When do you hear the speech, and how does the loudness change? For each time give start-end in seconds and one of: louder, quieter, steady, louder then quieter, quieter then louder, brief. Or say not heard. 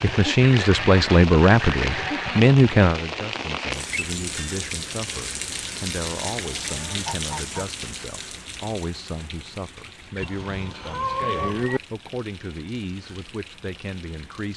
0.0-14.5 quieter.